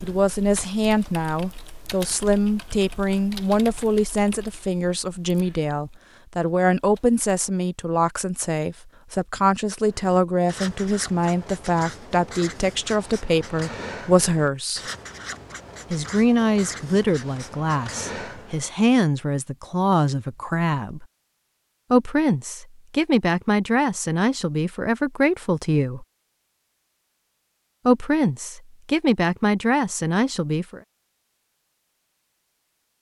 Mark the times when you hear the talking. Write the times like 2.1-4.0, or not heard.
0.0-14.8, 15.9-21.1, 21.9-26.1, 27.9-30.8.